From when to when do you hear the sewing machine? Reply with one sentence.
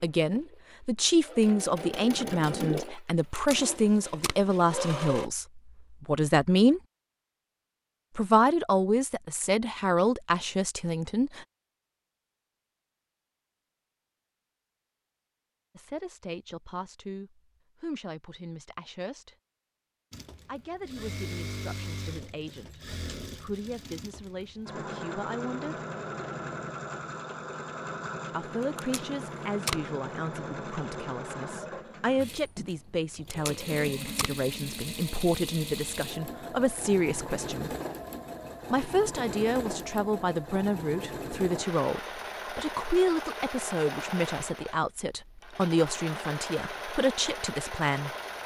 The sewing machine can be heard from 0.2 to 5.3 s and from 20.1 to 48.4 s.